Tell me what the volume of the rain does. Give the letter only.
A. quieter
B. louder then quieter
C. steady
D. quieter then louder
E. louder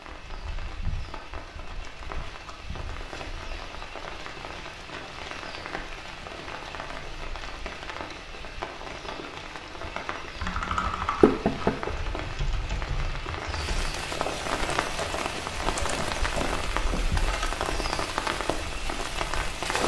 E.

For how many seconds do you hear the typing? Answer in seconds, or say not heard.
7 s.